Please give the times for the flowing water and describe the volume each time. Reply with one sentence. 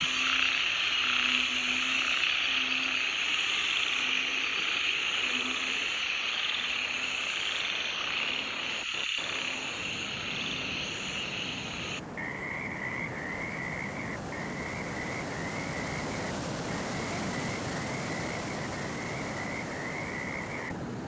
The flowing water can be heard from 0.0 to 21.0 s, getting louder.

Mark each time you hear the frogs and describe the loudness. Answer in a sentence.
The frogs can be heard from 0.0 to 20.9 s, getting quieter.